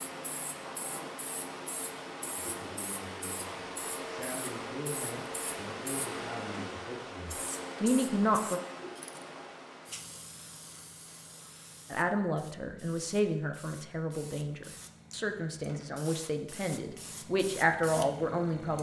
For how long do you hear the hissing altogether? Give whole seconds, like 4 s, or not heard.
19 s.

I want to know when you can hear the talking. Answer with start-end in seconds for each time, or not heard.
2.4-8.6, 11.9-18.7.